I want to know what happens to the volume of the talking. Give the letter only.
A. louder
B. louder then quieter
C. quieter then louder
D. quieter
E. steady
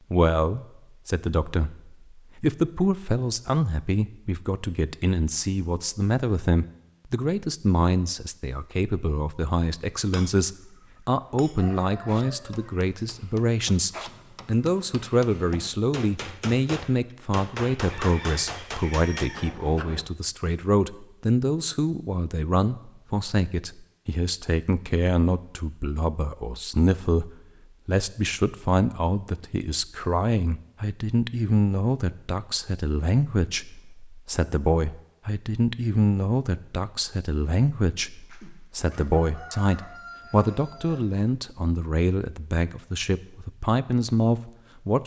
E.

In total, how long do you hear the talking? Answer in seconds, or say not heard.
45 s.